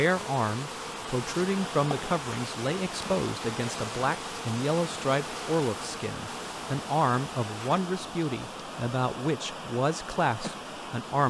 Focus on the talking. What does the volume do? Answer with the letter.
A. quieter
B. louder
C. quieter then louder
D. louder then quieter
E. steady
E.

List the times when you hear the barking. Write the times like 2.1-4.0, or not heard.
not heard.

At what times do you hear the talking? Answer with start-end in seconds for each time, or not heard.
0.0-11.2.